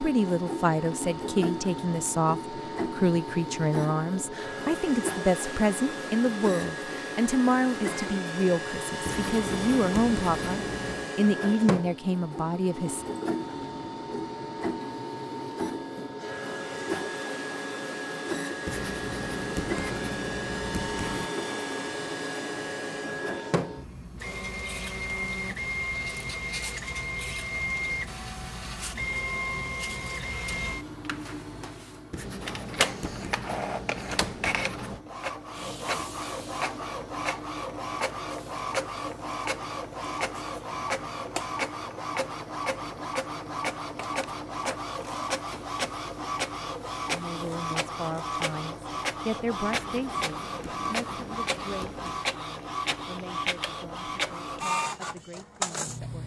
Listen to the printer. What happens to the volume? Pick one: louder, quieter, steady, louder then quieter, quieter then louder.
steady.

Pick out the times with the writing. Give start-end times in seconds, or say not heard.
9.1-11.1, 18.6-21.3, 32.1-35.0, 49.7-52.2.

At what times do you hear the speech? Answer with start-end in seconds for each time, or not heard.
0.0-13.1, 47.1-56.2.